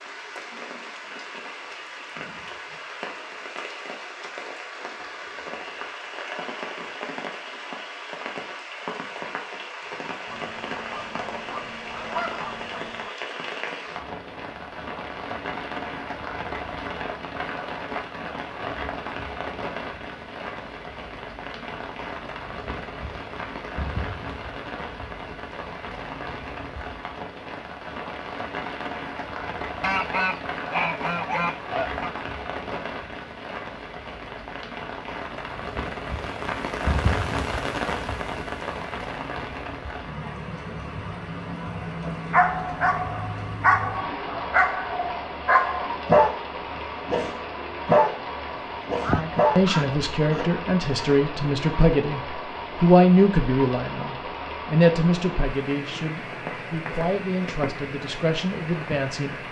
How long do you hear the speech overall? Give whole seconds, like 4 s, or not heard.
10 s.